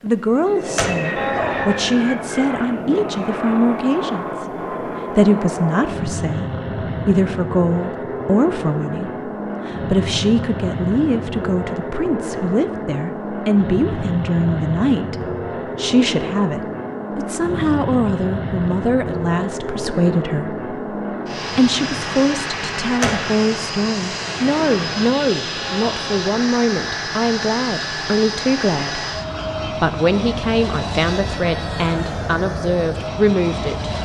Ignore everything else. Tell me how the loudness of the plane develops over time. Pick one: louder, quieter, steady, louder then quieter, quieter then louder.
steady.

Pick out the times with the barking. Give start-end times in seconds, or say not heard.
1.1-2.0, 25.6-26.3.